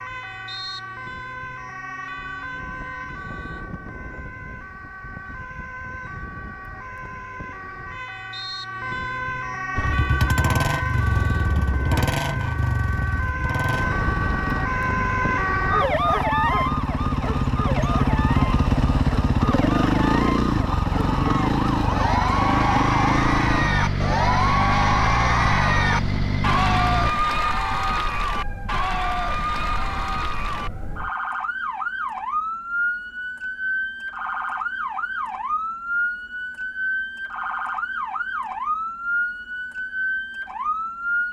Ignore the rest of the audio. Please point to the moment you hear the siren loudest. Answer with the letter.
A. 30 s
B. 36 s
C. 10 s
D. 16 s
D.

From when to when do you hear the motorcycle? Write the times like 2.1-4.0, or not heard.
9.8-27.1.